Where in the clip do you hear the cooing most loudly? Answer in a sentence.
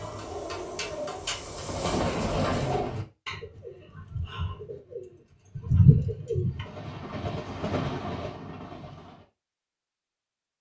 The volume of the cooing peaks at 6 seconds.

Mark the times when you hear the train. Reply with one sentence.
You can hear the train from 0.0 to 3.0 s and from 6.5 to 9.2 s.